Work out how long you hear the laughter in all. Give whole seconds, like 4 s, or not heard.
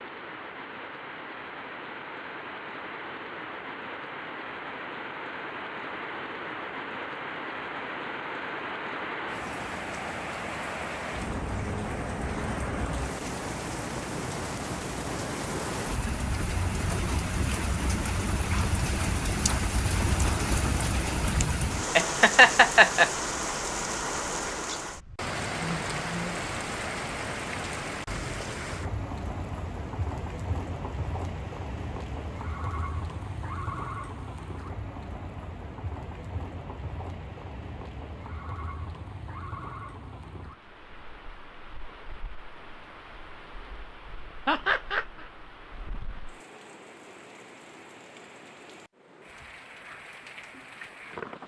2 s.